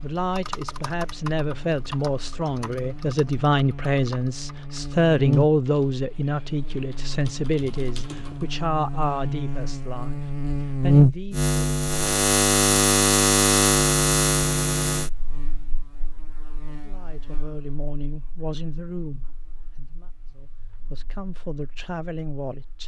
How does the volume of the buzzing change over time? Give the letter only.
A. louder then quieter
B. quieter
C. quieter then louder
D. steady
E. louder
A.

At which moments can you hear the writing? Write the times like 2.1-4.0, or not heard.
not heard.